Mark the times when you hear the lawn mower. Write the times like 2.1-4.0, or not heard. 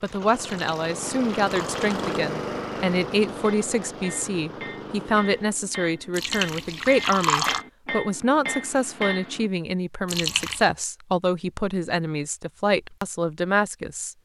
0.0-5.7.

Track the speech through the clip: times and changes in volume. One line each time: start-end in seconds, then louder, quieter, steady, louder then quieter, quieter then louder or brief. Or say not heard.
0.0-14.1 steady.